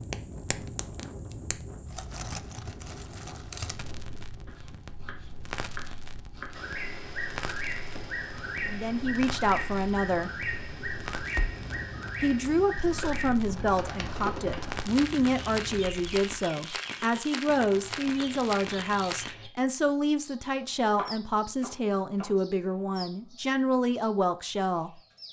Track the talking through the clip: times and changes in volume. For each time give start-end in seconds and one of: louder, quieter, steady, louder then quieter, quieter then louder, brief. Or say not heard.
8.7-10.4 brief
12.2-25.0 steady.